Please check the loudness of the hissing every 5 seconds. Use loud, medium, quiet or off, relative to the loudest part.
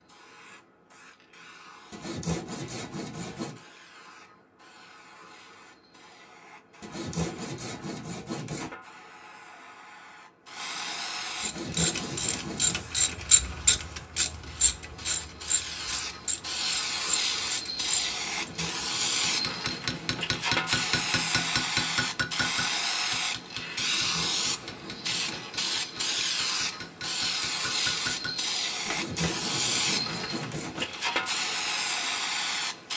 quiet, quiet, medium, loud, loud, loud, loud.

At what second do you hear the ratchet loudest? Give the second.
13 s.